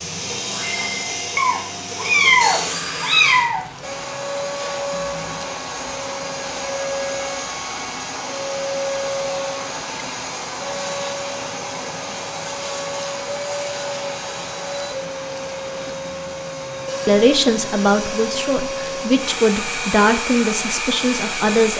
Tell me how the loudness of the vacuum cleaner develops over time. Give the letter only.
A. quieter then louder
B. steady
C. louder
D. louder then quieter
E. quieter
B.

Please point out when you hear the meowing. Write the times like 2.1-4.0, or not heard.
1.4-3.6.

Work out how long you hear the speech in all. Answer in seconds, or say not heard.
5 s.